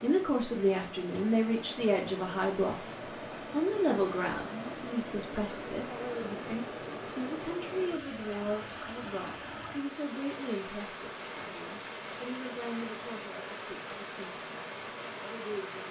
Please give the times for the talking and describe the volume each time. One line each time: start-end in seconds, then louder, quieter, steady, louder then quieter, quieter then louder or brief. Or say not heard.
0.0-2.9 brief
3.5-15.8 quieter.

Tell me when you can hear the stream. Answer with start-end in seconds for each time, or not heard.
0.0-15.8.